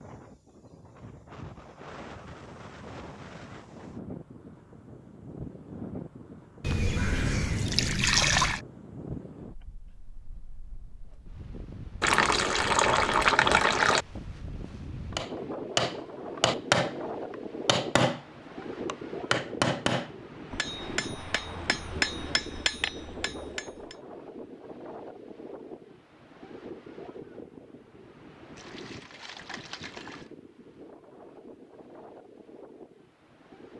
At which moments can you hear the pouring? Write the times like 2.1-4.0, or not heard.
6.6-8.6, 12.0-14.1, 28.6-30.3.